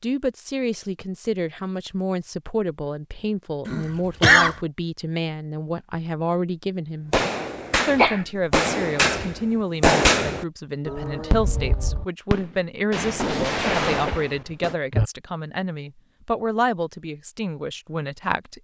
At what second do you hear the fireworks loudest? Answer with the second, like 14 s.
10 s.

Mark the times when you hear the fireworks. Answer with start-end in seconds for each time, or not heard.
7.1-14.8.